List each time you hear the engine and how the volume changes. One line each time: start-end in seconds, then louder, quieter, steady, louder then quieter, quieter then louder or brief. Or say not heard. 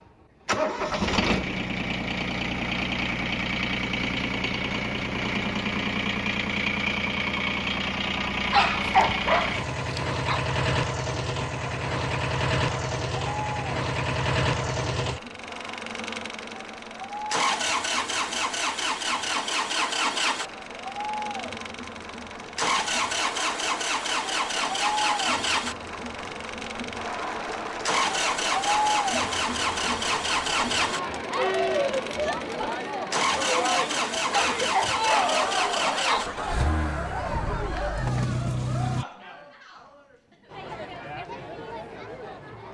0.5-39.0 steady.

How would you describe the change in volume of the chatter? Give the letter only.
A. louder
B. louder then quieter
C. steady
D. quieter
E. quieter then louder
B.